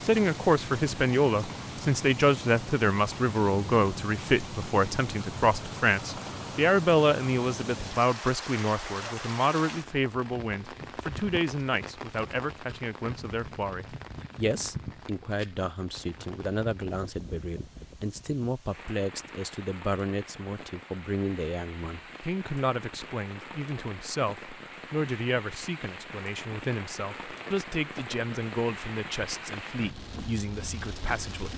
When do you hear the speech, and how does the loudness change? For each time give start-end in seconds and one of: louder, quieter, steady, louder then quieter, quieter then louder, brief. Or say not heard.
0.0-31.5 quieter.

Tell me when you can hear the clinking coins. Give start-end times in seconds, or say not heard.
not heard.